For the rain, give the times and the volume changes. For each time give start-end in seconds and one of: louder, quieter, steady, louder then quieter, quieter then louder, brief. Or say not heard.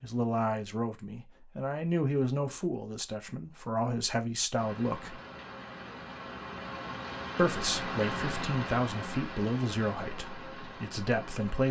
4.5-11.6 louder then quieter.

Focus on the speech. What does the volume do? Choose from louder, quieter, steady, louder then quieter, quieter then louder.
steady.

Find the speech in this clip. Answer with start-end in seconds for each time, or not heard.
0.0-5.2, 7.3-11.6.